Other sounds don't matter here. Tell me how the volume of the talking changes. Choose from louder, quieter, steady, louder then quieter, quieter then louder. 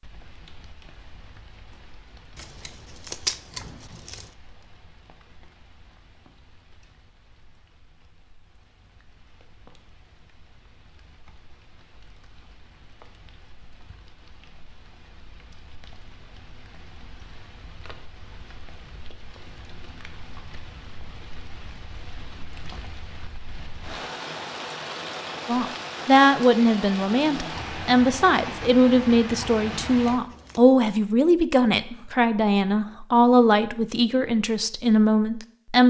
steady.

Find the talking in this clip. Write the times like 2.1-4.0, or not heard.
25.4-35.8.